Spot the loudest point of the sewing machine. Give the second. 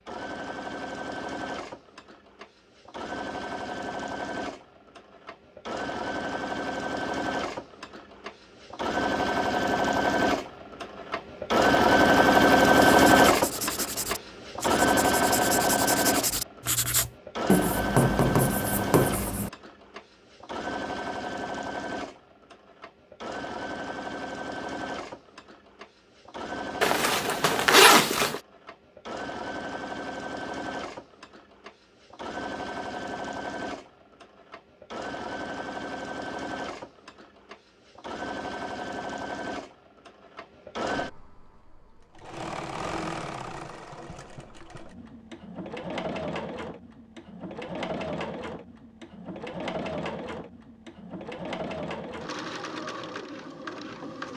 13 s.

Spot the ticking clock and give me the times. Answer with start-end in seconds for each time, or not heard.
not heard.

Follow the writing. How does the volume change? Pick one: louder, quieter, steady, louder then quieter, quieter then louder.
louder.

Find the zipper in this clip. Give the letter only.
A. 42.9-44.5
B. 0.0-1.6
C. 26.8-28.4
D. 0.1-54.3
C.